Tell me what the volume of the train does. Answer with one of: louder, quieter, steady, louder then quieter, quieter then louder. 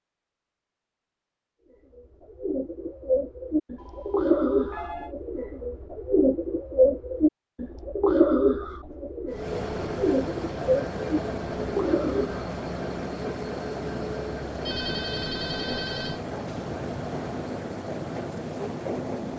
steady.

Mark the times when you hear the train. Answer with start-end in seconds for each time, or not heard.
9.3-19.3.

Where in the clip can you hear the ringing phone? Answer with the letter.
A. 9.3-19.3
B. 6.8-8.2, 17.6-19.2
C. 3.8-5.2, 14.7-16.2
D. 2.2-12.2
C.